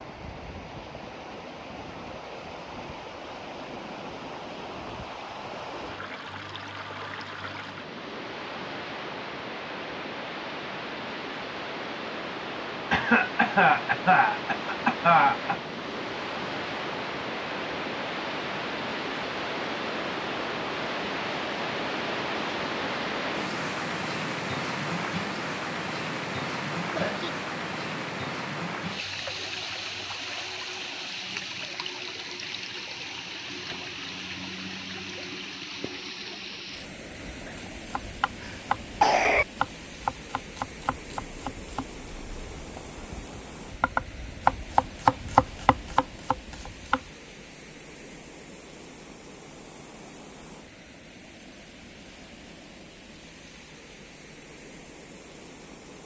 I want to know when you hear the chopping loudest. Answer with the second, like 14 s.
45 s.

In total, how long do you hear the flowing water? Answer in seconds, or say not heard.
56 s.